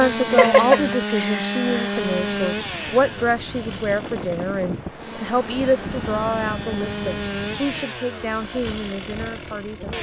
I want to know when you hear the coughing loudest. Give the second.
1 s.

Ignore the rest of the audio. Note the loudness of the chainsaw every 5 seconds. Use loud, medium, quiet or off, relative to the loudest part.
loud, medium.